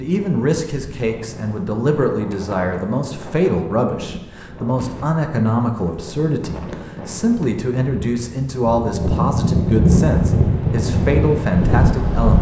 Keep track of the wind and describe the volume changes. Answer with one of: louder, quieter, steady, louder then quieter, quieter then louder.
louder.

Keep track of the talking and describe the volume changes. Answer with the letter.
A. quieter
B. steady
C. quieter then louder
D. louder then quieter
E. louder
B.